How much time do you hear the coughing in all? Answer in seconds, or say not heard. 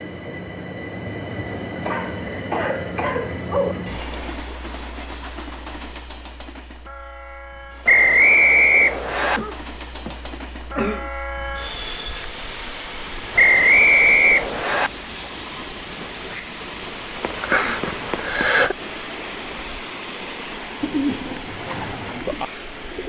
5 s.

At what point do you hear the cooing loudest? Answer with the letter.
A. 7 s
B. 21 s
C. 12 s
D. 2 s
B.